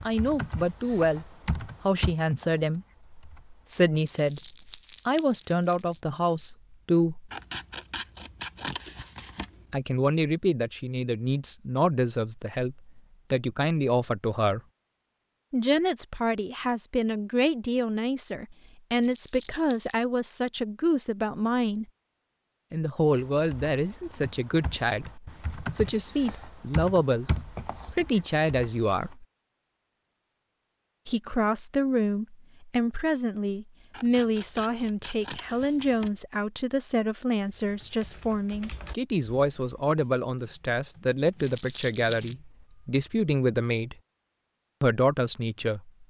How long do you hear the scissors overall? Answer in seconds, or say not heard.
5 s.